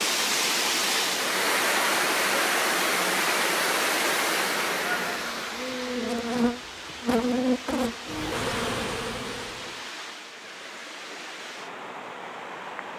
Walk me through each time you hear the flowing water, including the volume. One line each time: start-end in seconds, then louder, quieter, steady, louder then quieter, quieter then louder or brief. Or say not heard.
0.0-12.9 quieter.